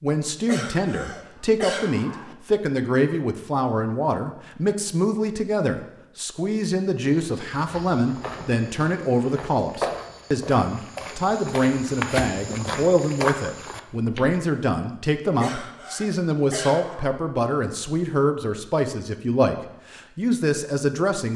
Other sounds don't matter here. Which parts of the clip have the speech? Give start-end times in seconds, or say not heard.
0.0-21.3.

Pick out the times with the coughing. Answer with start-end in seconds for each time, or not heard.
0.5-2.4, 15.4-17.1.